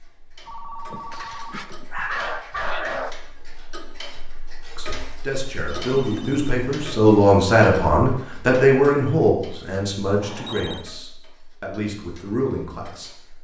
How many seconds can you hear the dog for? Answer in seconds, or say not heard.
2 s.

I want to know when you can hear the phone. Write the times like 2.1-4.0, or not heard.
0.5-1.9, 5.5-7.0, 10.2-10.8.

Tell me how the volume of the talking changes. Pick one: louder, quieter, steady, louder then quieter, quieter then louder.
louder then quieter.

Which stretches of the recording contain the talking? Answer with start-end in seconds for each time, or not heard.
4.7-13.1.